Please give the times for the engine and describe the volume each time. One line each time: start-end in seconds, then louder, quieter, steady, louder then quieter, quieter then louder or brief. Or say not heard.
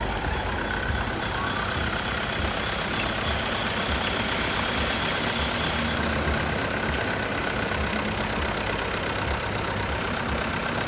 0.0-10.8 steady.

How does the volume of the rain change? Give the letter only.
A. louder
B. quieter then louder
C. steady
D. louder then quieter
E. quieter
D.